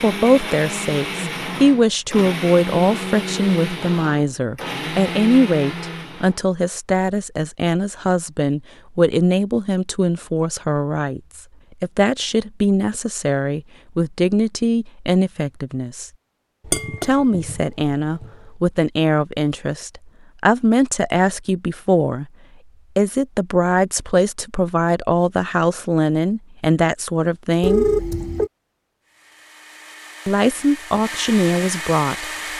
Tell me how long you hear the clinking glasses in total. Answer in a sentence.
The clinking glasses can be heard for 2 seconds in total.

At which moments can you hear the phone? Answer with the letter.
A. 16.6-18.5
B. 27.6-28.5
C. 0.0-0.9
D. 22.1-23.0
B.